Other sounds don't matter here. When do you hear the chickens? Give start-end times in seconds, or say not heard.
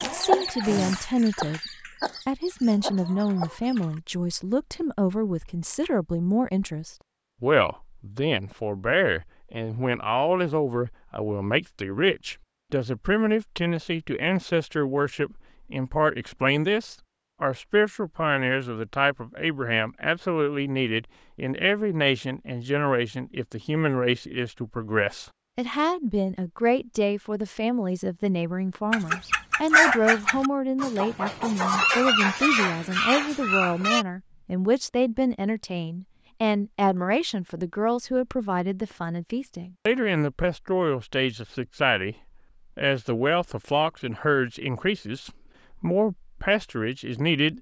0.0-4.0, 28.9-34.0.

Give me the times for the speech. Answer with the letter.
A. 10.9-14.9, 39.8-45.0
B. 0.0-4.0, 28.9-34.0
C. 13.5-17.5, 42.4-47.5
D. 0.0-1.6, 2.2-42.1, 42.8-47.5
D.